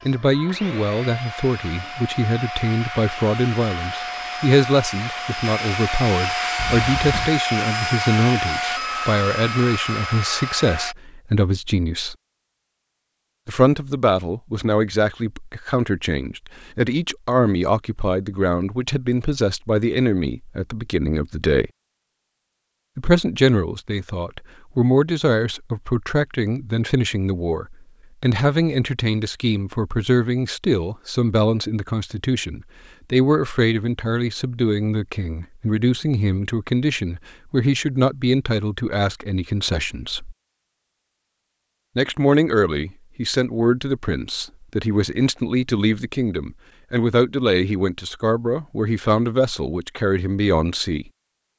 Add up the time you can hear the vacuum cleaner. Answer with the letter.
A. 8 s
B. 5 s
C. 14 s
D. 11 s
D.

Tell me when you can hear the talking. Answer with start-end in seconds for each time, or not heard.
0.1-12.2, 13.4-21.7, 22.9-40.4, 42.0-51.0.